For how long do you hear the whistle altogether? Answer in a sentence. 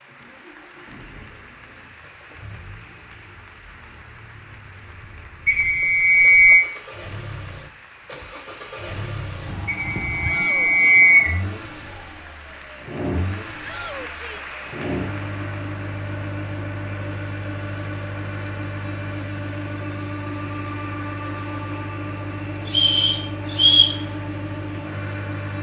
The whistle can be heard for 4 seconds in total.